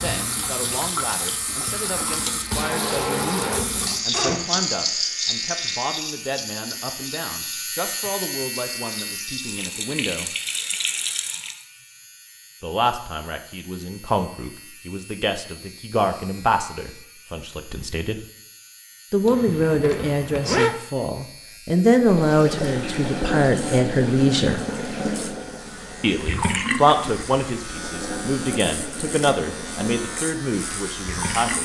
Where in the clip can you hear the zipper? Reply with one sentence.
The zipper can be heard from 4.1 to 4.5 s and from 19.2 to 20.8 s.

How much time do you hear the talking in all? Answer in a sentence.
You can hear the talking for 27 seconds altogether.